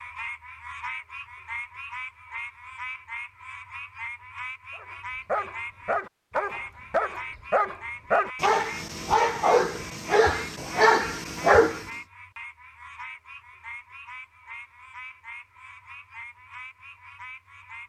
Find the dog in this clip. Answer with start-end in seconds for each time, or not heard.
4.8-11.8.